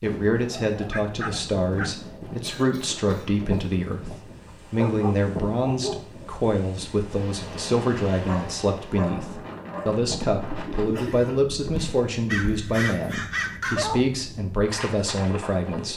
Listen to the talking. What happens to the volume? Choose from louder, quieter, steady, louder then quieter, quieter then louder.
steady.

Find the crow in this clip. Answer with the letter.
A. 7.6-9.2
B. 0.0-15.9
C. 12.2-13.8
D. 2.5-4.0
C.